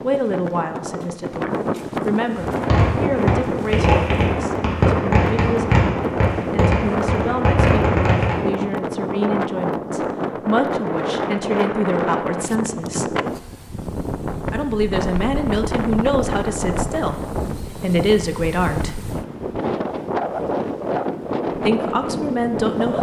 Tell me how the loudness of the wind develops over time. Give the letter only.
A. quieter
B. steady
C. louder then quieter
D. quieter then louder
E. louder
B.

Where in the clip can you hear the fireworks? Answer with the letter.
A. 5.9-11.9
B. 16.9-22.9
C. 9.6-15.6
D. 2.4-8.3
D.